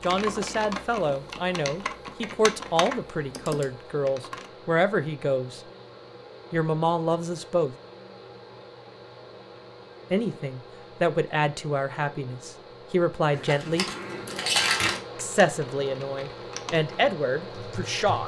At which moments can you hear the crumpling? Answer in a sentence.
You can hear the crumpling from 13.3 to 15.0 s.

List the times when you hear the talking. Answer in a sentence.
You can hear the talking from 0.0 to 5.6 s, from 6.5 to 7.8 s, from 10.1 to 13.8 s and from 15.2 to 18.2 s.